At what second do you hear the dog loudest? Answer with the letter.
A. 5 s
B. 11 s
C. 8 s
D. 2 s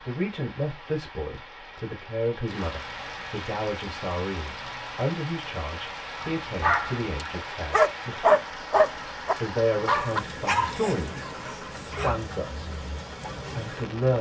C.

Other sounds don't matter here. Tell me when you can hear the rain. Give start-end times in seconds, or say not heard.
0.0-14.1.